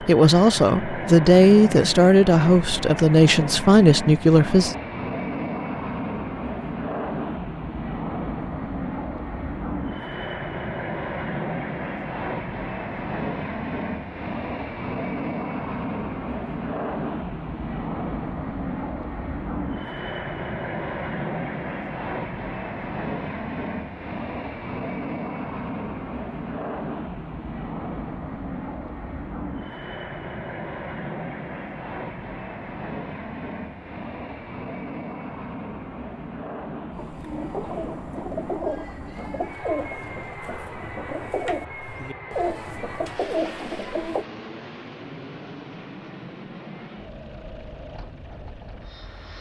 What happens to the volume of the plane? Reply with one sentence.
The volume of the plane goes down.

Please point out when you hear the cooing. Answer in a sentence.
You can hear the cooing from 36.9 to 44.2 s.